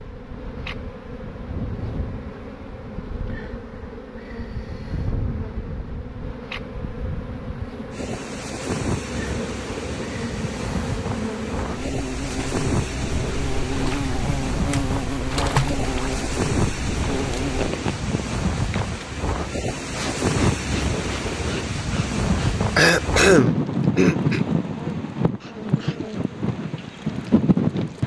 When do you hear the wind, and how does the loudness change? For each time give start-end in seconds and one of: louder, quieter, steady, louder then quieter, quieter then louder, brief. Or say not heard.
0.0-28.0 louder.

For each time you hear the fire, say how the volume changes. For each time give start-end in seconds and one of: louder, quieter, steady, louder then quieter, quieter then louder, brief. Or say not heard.
not heard.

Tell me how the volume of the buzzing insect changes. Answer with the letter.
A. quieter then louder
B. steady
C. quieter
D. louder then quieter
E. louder
D.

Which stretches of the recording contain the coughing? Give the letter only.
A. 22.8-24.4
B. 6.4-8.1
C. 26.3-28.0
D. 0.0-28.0
A.